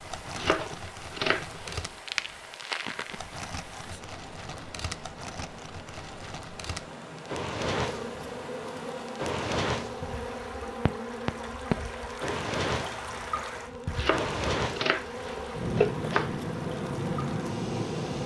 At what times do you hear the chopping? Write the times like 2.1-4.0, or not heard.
0.3-1.9, 13.9-16.4.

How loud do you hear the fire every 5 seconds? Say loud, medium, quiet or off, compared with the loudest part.
medium, loud, loud, loud.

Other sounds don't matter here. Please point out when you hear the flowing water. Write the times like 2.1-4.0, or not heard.
0.0-18.2.